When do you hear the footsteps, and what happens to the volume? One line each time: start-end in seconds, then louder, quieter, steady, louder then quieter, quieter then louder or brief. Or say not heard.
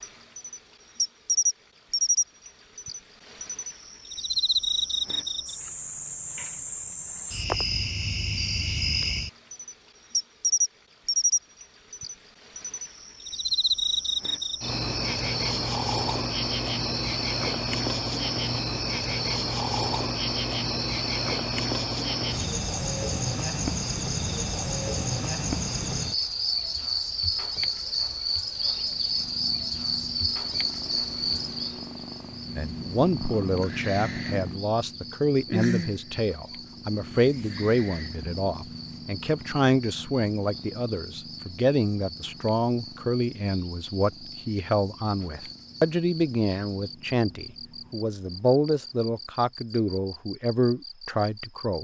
not heard.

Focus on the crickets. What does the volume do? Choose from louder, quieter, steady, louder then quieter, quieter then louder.
quieter.